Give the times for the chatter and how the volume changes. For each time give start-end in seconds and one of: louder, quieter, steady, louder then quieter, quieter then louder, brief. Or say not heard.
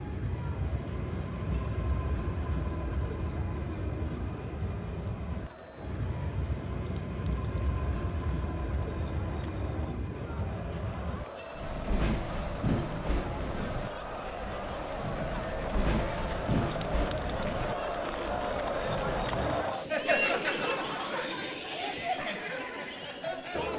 0.2-23.7 louder.